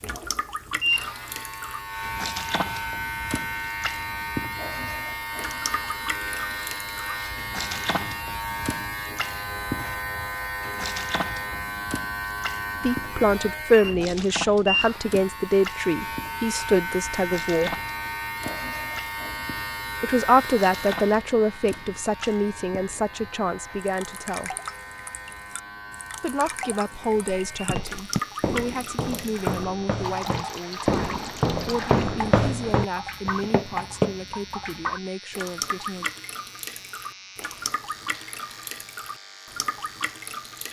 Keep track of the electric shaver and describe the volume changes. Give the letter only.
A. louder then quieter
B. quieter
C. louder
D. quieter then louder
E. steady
B.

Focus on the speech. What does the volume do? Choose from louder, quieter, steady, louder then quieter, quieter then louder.
quieter.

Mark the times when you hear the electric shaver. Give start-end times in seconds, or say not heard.
0.0-40.6.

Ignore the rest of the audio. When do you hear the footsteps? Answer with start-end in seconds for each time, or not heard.
27.2-34.2.